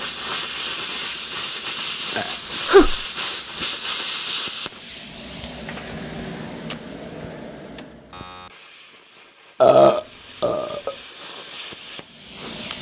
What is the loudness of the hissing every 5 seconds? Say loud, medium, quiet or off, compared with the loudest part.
loud, medium, medium.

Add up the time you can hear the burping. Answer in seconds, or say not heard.
2 s.